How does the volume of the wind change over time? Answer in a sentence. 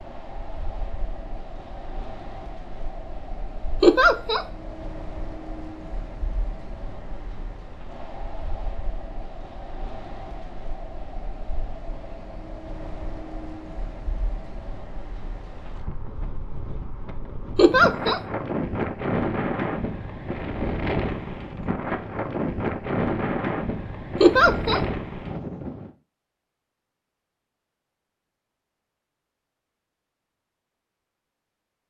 The volume of the wind goes up.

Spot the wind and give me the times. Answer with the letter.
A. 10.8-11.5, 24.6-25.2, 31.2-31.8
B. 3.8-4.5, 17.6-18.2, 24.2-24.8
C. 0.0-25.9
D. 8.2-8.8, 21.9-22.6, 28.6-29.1
C.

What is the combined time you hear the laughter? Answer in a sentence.
You can hear the laughter for 2 seconds altogether.